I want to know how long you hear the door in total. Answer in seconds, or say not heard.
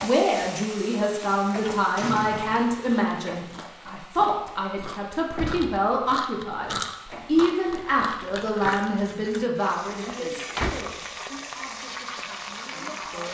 3 s.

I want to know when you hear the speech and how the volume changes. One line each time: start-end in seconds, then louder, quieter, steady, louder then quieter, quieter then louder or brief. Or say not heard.
0.0-13.2 quieter.